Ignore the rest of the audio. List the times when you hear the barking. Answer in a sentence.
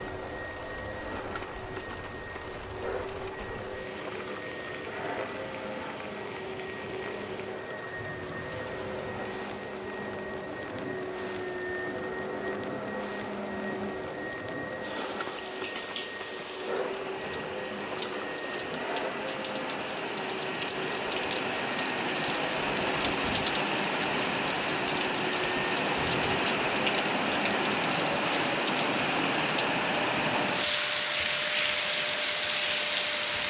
You can't hear the barking here.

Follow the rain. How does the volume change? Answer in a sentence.
The volume of the rain goes up.